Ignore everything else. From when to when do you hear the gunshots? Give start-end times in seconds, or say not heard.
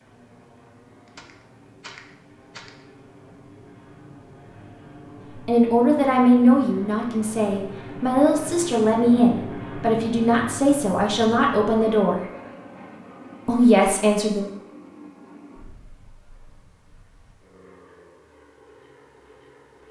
1.1-2.9.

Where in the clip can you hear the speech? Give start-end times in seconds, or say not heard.
5.5-12.2, 13.4-14.5.